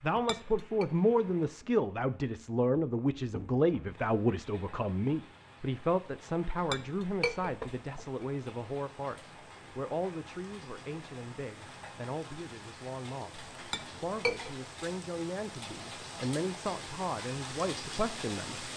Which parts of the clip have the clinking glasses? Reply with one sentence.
The clinking glasses can be heard from 0.1 to 0.8 s, from 6.7 to 8.1 s and from 13.7 to 14.5 s.